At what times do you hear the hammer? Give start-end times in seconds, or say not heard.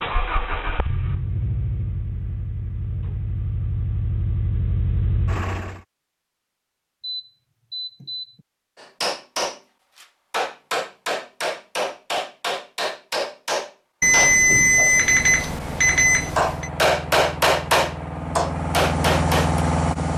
8.8-19.6.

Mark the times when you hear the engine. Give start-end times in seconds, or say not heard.
0.0-5.8, 14.8-20.1.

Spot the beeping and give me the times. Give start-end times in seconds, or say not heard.
7.0-8.4, 14.0-16.7.